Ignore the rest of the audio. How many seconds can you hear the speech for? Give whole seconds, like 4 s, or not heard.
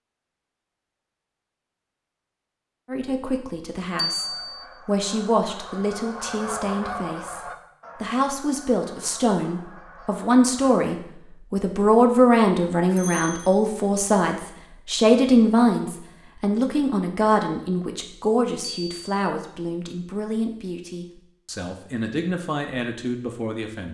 21 s.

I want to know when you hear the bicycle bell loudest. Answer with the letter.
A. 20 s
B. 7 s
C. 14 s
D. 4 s
D.